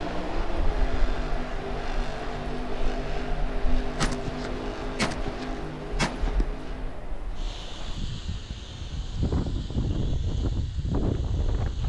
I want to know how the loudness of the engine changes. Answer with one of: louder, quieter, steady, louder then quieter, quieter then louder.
quieter.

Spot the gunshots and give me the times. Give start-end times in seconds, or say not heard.
4.0-6.5.